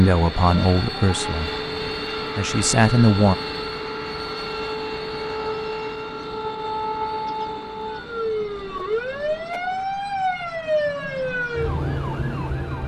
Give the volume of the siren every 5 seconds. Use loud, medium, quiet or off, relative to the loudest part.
medium, loud, loud.